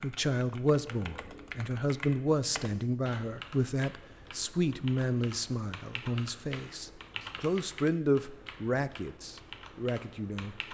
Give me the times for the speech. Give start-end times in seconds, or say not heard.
0.0-10.6.